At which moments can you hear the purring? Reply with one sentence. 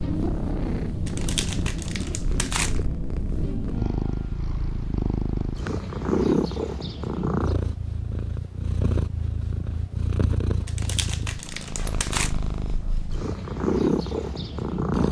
You can hear the purring from 0.0 to 15.0 s.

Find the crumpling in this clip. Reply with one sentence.
The crumpling can be heard from 1.1 to 2.8 s and from 10.7 to 12.3 s.